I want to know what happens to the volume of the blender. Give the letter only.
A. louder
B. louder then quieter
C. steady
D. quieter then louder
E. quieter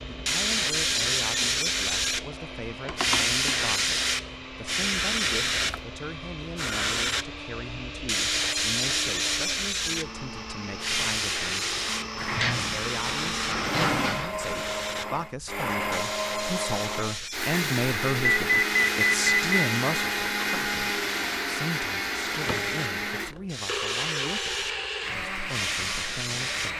A.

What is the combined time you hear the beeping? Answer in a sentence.
The beeping can be heard for 2 seconds in total.